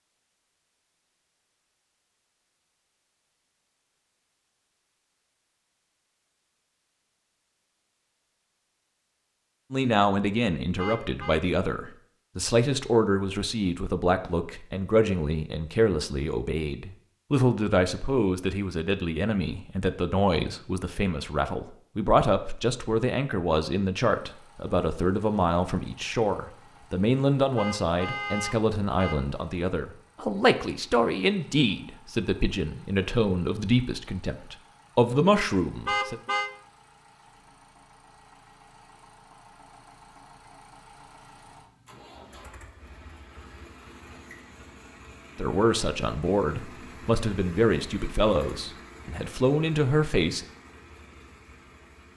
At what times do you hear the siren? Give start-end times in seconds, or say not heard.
not heard.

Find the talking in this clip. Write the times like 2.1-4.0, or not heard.
9.7-36.2, 45.4-50.5.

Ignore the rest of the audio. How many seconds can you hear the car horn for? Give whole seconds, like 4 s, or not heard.
3 s.